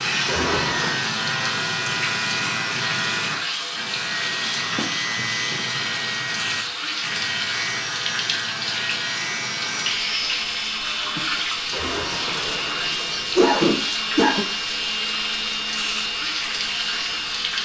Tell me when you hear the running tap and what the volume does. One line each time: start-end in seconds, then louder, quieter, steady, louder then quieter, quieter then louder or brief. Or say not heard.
0.0-17.6 steady.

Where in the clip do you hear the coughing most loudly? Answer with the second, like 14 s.
14 s.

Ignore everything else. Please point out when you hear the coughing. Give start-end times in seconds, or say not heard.
0.2-1.0, 11.7-14.4.